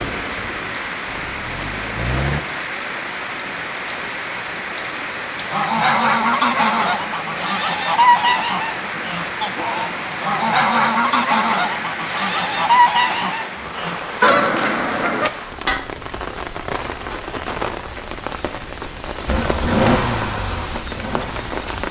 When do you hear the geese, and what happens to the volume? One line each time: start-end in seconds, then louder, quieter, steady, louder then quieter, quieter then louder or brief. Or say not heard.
5.5-15.3 steady.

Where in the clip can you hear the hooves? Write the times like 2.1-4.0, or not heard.
not heard.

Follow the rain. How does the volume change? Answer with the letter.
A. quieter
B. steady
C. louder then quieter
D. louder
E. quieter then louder
B.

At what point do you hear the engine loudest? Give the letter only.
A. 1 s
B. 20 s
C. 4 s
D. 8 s
B.